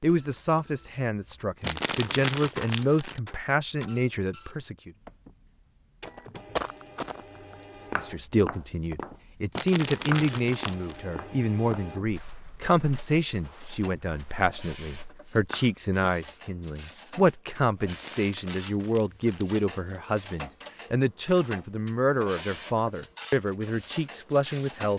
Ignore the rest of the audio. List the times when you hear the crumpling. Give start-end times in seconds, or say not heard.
1.6-3.2, 9.6-11.0, 17.9-19.6.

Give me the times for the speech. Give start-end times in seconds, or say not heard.
0.0-4.9, 8.0-24.9.